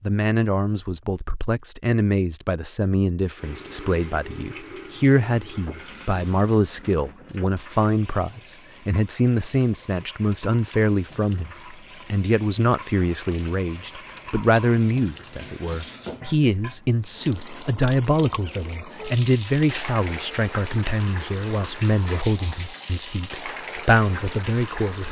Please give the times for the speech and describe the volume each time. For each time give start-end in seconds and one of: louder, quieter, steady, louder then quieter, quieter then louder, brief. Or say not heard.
0.0-25.0 steady.